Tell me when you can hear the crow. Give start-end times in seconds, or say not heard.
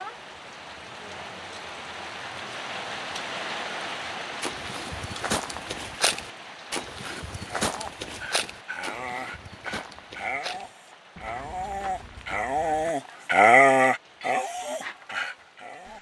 not heard.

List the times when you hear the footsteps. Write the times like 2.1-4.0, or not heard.
4.4-12.9.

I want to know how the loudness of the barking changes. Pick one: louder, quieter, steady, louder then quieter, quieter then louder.
louder then quieter.